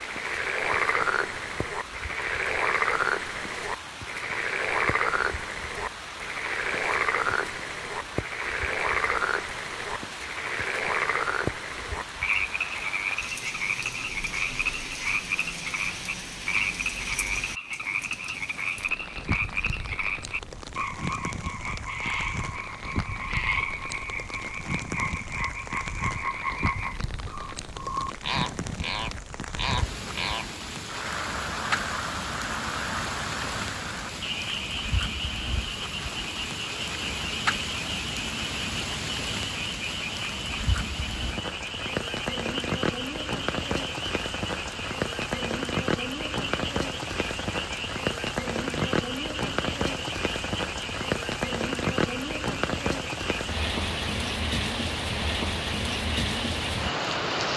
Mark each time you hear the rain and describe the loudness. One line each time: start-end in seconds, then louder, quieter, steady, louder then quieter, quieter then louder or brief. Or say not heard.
0.0-57.5 louder.